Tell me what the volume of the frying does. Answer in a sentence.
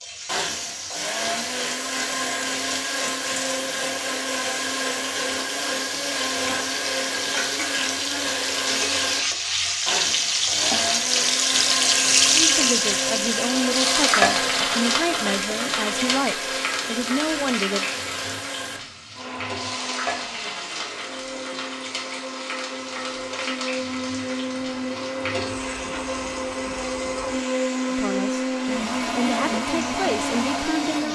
The volume of the frying goes up, then down.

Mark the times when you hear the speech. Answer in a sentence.
The speech can be heard from 12.3 to 17.9 s and from 27.9 to 31.1 s.